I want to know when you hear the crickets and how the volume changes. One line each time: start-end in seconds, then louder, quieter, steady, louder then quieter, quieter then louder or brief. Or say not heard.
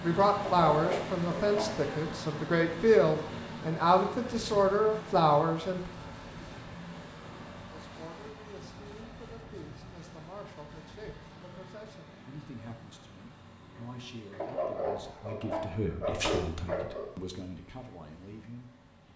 not heard.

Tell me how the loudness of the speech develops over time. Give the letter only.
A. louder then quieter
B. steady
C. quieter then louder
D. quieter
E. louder
C.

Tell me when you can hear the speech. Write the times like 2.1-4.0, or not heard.
0.0-5.9, 7.7-19.1.